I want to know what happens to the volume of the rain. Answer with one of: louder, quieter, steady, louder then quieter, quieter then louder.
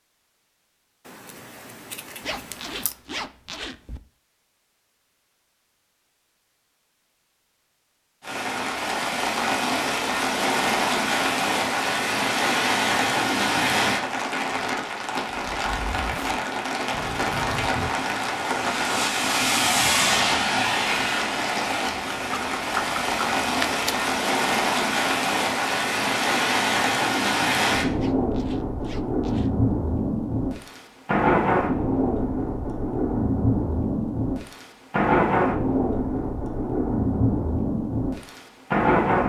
steady.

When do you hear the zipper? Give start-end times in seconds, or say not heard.
2.2-4.0, 15.5-17.9, 27.9-29.7.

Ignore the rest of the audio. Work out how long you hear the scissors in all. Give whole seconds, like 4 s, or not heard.
4 s.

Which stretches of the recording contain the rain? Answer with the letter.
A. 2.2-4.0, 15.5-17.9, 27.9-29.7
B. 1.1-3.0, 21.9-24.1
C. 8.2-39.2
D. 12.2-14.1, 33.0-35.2
C.